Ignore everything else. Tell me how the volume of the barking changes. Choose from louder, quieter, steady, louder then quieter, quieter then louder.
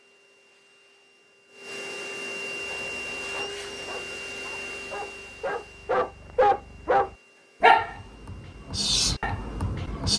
louder then quieter.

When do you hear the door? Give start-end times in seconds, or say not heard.
not heard.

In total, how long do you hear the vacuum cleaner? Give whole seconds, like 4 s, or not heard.
10 s.